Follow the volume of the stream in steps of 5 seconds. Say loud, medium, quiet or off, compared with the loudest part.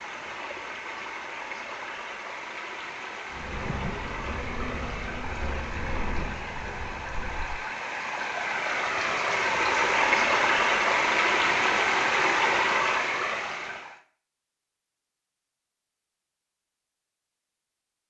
quiet, medium, loud, off.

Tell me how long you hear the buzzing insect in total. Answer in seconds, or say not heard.
4 s.